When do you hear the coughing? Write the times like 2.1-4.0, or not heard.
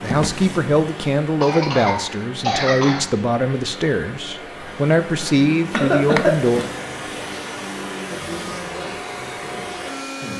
1.4-3.0, 5.7-6.3.